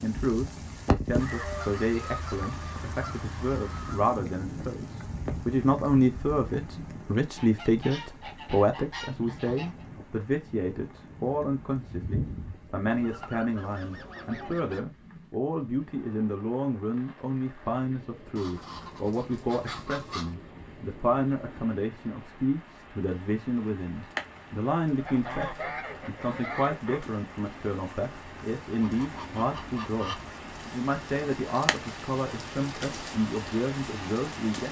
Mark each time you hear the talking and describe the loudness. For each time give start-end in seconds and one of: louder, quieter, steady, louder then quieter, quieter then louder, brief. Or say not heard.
0.0-34.6 steady.